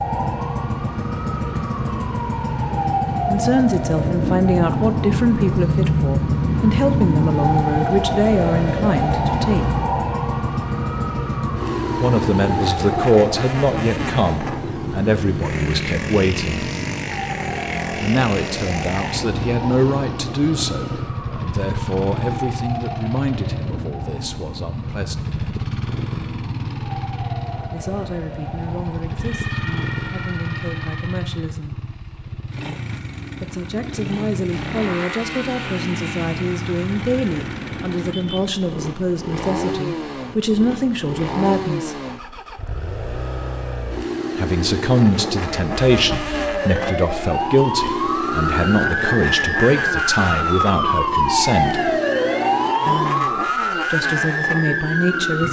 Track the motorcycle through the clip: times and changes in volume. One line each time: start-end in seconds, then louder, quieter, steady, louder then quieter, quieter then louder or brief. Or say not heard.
0.0-55.4 steady.